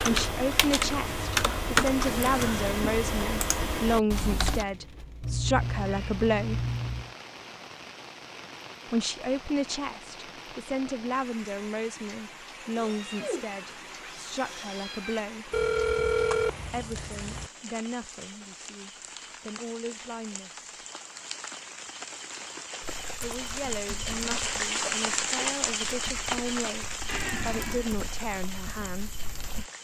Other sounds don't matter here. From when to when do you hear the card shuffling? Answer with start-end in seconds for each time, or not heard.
not heard.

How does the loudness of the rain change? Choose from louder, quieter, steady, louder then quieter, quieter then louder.
louder.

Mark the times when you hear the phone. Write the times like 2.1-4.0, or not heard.
15.5-17.5.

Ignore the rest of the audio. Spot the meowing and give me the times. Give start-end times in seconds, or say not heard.
5.2-7.2, 12.8-15.2, 27.1-27.9.